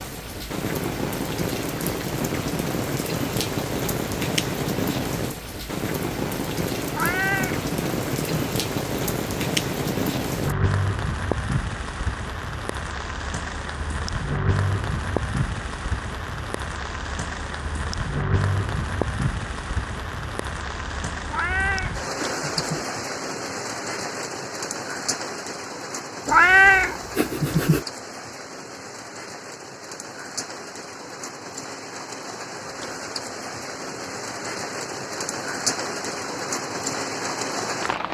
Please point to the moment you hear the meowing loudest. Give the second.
27 s.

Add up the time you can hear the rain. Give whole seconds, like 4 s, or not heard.
38 s.